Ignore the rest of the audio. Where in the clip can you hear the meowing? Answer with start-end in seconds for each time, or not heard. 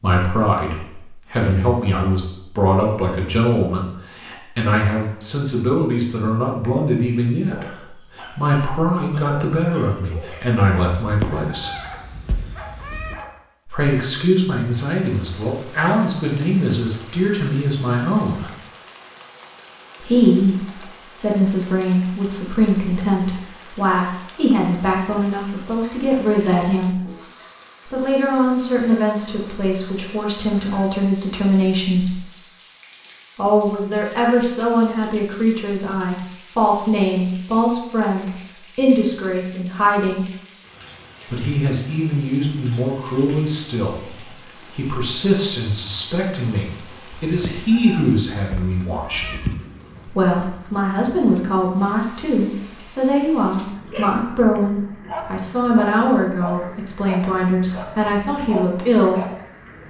10.9-13.2, 47.2-49.5.